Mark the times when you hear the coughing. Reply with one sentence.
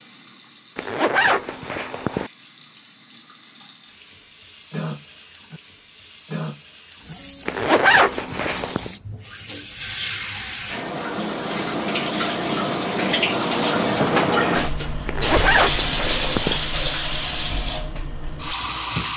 You can't hear the coughing here.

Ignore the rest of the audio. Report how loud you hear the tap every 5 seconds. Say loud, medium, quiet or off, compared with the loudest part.
quiet, quiet, loud, loud.